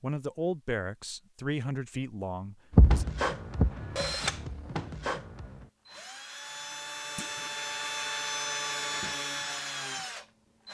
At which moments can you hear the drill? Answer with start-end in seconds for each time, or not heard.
2.7-10.7.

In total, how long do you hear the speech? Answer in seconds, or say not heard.
3 s.